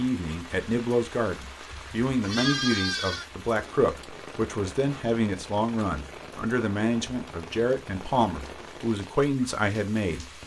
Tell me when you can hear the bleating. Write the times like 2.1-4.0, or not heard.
1.7-3.3.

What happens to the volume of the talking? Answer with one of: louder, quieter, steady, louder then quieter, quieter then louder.
steady.